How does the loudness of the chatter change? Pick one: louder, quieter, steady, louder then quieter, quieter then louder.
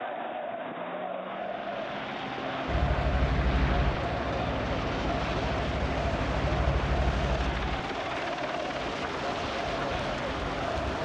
steady.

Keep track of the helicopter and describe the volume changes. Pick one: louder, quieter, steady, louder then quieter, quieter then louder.
steady.